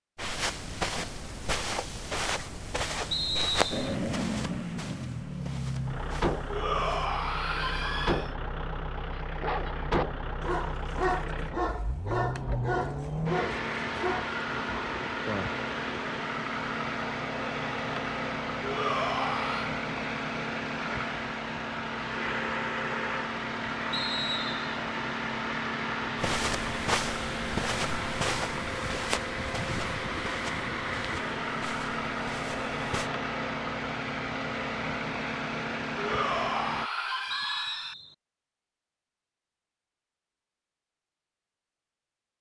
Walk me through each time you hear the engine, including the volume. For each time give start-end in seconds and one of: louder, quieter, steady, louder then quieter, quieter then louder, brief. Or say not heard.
3.7-36.9 steady.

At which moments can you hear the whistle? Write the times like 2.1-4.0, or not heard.
3.1-4.0, 23.9-24.7, 37.3-38.1.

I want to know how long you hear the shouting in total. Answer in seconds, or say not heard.
5 s.